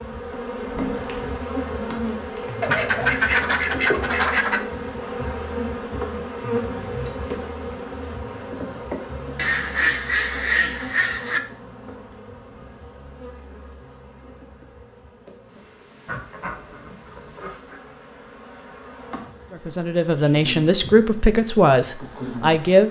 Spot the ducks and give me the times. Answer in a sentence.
The ducks can be heard from 2.6 to 4.6 s, from 9.3 to 11.4 s and from 16.1 to 17.8 s.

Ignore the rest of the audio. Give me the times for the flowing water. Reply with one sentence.
The flowing water can't be heard in this clip.